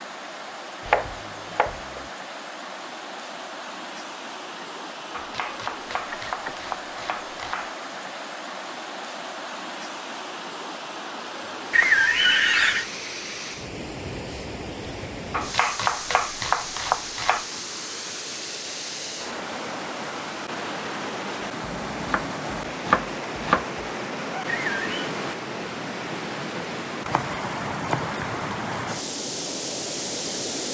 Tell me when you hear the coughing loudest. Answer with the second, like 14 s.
12 s.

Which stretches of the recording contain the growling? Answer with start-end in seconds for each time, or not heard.
not heard.